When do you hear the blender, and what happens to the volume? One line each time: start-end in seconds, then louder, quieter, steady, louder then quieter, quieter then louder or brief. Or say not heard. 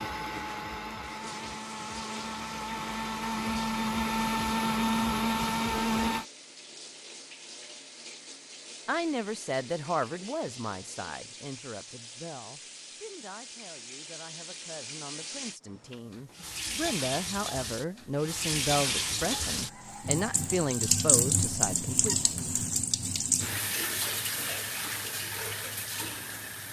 0.0-6.2 louder.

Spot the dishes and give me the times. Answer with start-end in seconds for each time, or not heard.
not heard.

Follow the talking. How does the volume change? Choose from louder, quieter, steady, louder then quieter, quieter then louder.
quieter then louder.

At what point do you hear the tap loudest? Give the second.
21 s.